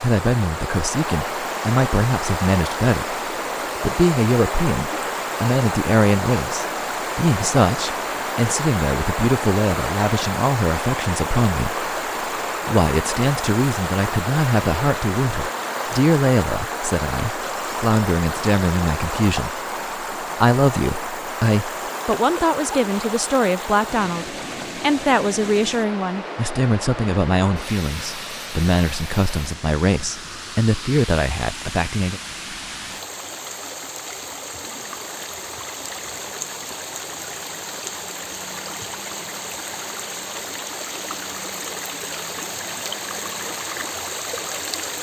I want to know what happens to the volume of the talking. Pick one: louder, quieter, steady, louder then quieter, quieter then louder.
steady.